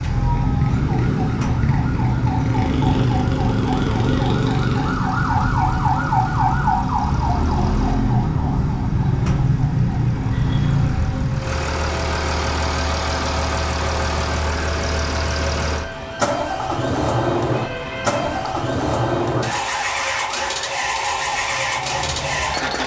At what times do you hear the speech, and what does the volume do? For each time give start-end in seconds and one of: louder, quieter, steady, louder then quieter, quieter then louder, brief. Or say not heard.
not heard.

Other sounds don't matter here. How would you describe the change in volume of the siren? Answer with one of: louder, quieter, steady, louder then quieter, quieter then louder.
quieter.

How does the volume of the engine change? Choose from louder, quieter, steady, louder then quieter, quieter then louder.
louder.